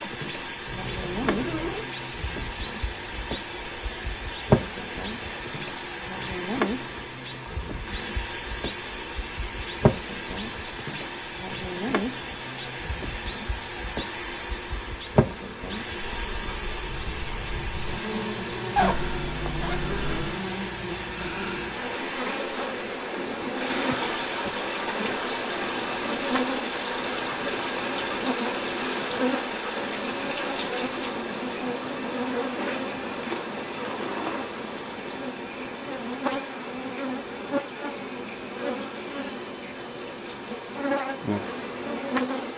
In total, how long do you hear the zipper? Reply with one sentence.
The zipper can be heard for 5 seconds in total.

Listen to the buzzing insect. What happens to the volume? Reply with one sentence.
The loudness of the buzzing insect stays about the same.